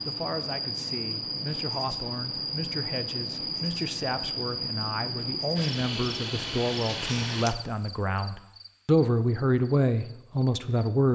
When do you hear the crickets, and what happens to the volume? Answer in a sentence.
The crickets can be heard from 0.0 to 11.1 s, getting quieter.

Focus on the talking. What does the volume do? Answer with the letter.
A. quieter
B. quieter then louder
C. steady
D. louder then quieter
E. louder
E.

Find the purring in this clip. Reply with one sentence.
The purring can't be heard in this clip.